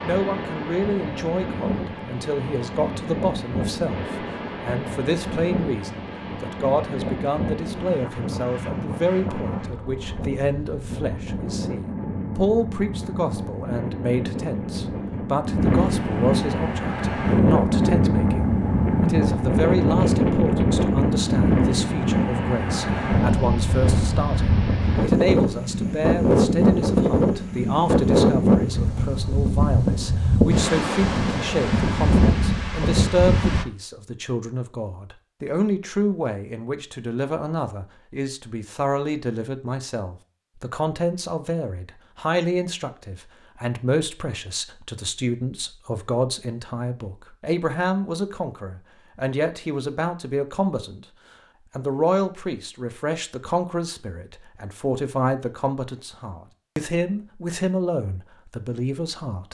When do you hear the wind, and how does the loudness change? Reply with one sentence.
You can hear the wind from 0.0 to 33.6 s, getting louder.